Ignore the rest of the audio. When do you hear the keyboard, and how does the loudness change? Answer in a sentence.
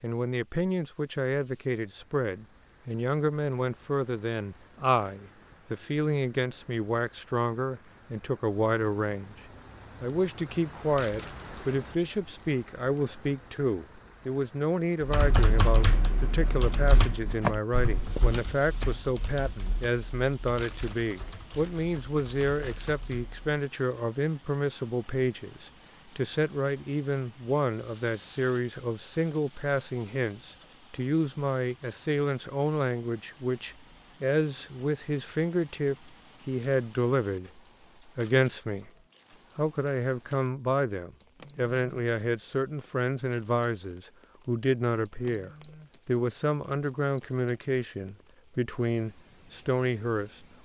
You can hear the keyboard from 15.0 to 23.6 s, getting quieter.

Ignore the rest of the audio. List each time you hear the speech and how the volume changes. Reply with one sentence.
The speech can be heard from 0.0 to 9.3 s, at a steady volume; from 10.0 to 38.9 s, at a steady volume; and from 39.5 to 50.5 s, at a steady volume.